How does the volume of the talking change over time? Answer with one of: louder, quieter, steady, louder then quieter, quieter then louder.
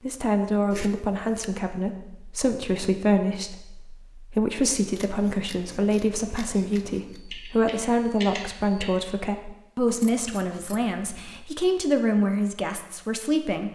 steady.